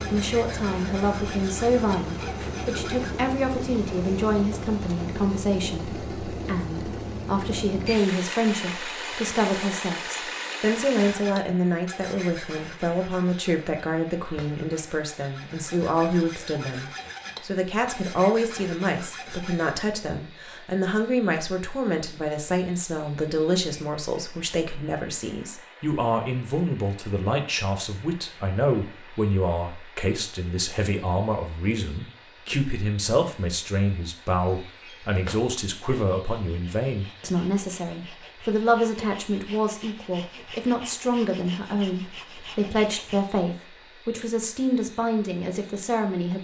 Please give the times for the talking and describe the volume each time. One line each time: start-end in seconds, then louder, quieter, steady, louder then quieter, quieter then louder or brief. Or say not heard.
0.1-46.3 steady.